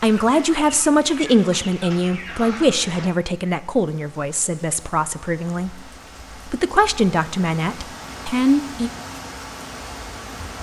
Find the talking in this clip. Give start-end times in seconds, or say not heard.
0.0-5.8, 6.5-8.9.